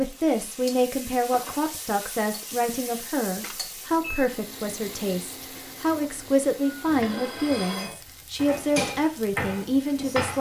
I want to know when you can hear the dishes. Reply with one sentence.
You can hear the dishes from 6.7 to 10.3 s.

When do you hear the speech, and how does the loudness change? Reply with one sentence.
You can hear the speech from 0.0 to 10.3 s, at a steady volume.